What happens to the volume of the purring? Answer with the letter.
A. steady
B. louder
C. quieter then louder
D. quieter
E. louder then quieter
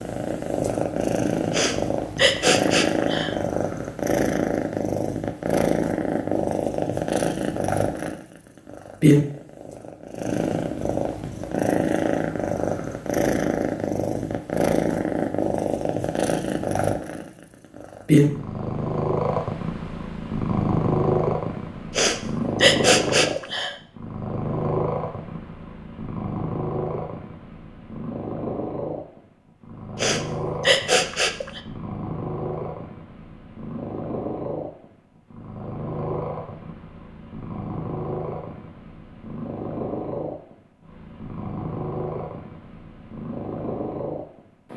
D.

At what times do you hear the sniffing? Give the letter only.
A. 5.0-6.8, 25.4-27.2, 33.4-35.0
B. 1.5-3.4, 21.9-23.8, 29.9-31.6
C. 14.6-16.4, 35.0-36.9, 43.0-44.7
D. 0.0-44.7
B.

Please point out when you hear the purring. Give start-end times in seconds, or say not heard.
0.0-44.7.